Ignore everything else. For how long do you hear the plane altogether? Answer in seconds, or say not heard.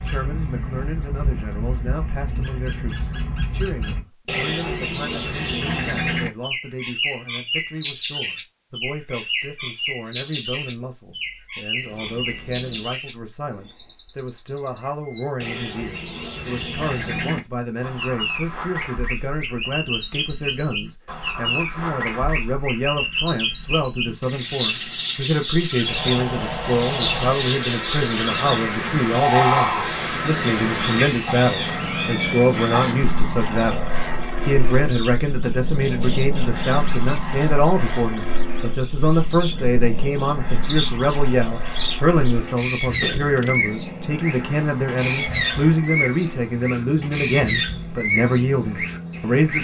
24 s.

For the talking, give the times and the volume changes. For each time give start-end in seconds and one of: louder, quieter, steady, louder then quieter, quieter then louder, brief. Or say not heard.
0.0-49.5 louder.